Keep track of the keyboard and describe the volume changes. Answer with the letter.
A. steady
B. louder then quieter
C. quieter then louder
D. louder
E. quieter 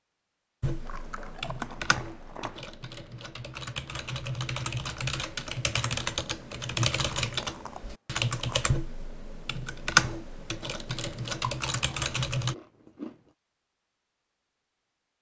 D.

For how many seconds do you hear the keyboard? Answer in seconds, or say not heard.
12 s.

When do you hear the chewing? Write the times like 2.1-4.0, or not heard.
0.8-2.6, 7.2-8.6, 11.5-13.2.